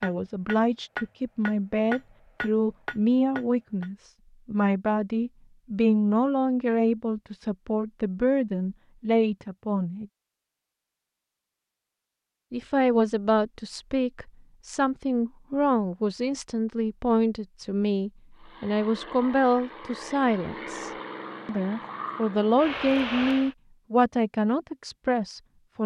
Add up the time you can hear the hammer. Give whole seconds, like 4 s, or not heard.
4 s.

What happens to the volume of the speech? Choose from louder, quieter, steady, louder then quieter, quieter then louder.
steady.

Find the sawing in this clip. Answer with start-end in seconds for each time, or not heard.
not heard.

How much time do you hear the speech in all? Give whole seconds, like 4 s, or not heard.
23 s.